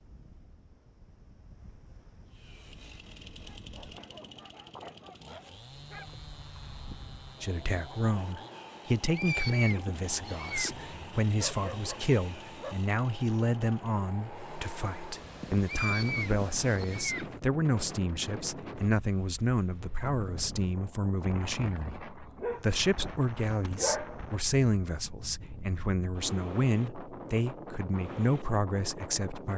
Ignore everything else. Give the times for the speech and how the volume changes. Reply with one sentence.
The speech can be heard from 7.4 to 29.5 s, at a steady volume.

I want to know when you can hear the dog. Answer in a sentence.
You can hear the dog from 3.4 to 6.2 s, from 10.8 to 12.8 s and from 22.1 to 24.2 s.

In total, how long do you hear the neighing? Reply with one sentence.
You can hear the neighing for 4 seconds altogether.